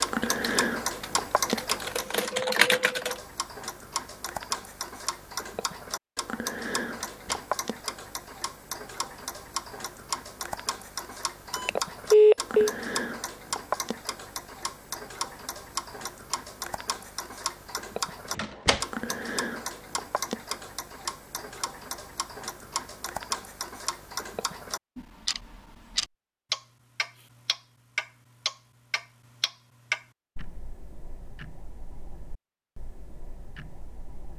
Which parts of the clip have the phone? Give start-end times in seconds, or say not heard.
11.6-12.7.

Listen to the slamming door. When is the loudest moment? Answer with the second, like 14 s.
19 s.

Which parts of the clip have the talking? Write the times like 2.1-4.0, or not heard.
not heard.